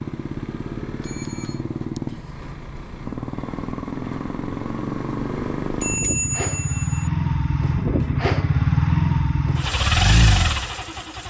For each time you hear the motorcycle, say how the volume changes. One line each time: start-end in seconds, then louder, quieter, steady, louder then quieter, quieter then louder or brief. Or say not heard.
0.0-11.2 louder.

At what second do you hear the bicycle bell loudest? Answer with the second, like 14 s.
6 s.